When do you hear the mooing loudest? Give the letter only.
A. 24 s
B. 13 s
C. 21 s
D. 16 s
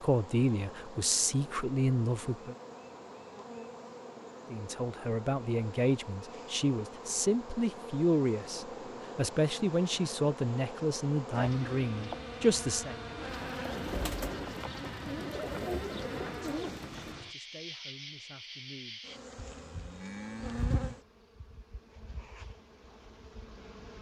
C.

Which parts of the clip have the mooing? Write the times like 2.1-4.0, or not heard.
19.4-21.0.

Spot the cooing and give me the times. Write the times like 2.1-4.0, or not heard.
13.2-17.1.